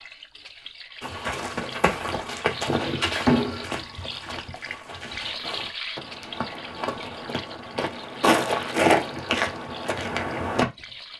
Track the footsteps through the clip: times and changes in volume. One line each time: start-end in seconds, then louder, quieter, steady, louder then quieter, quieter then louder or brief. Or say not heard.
1.0-10.7 quieter then louder.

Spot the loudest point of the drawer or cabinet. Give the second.
3 s.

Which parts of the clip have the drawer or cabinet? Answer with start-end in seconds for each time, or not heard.
2.6-3.8, 8.9-9.4.